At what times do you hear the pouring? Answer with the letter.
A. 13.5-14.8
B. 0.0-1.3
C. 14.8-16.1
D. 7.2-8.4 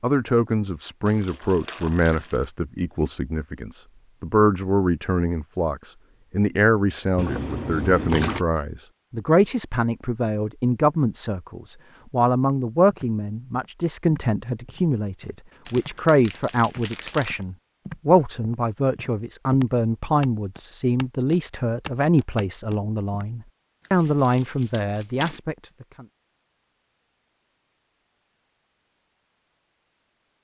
D.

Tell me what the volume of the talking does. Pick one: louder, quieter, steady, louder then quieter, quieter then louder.
steady.